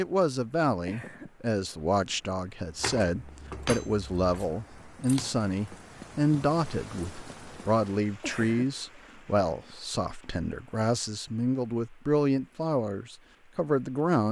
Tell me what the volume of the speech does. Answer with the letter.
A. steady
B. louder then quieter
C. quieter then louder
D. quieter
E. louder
A.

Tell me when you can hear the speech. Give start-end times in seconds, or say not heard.
0.0-14.2.